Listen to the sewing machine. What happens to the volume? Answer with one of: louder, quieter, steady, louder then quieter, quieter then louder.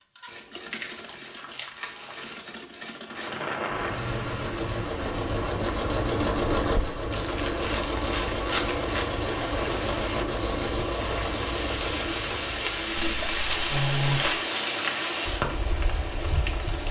louder then quieter.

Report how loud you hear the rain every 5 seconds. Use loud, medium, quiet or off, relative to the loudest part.
loud, medium, loud, loud.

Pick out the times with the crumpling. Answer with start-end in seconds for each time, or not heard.
0.7-2.5, 7.1-9.1, 12.9-14.4.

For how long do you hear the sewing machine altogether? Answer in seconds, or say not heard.
17 s.